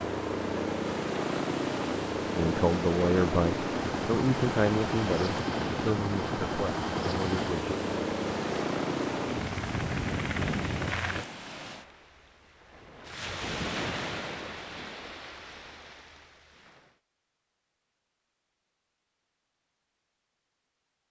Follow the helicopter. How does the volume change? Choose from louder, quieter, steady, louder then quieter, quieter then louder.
steady.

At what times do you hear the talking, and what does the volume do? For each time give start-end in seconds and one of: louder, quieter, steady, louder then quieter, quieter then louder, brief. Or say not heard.
2.4-7.8 quieter.